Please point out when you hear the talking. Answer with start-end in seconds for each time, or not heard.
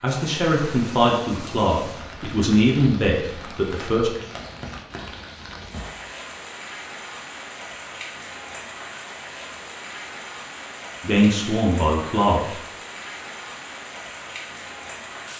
0.0-4.1, 11.0-12.6.